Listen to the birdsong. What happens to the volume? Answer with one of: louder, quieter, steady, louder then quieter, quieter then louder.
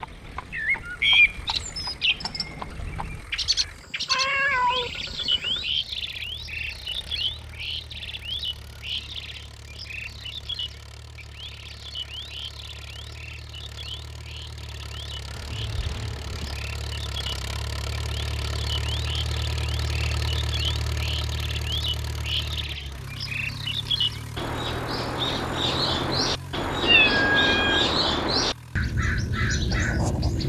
quieter then louder.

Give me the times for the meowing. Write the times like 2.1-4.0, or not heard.
3.5-4.9, 15.3-16.6, 26.8-27.9.